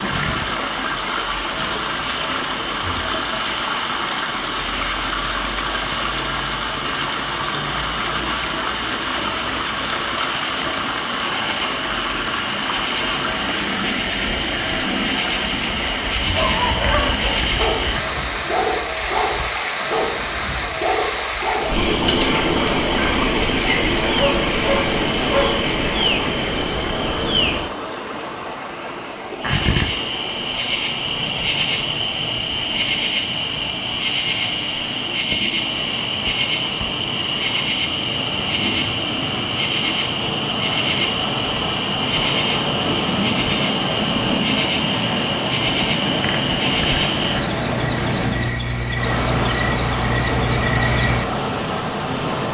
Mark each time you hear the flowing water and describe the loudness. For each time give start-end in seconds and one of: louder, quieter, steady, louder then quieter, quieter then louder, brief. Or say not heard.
0.0-52.4 quieter then louder.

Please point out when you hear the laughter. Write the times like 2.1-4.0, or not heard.
not heard.